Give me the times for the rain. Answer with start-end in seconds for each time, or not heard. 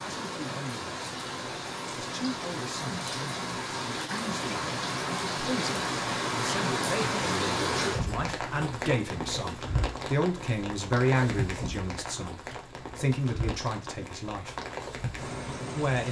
0.0-16.0.